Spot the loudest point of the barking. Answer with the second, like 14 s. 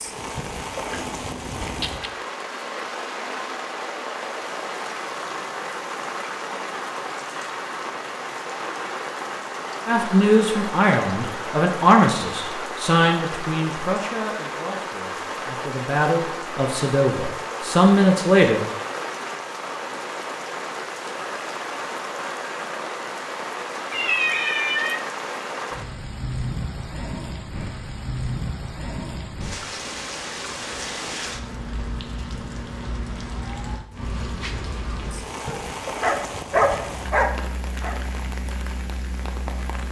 37 s.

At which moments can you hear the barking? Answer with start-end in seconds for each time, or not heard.
35.4-38.0.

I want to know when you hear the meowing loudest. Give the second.
24 s.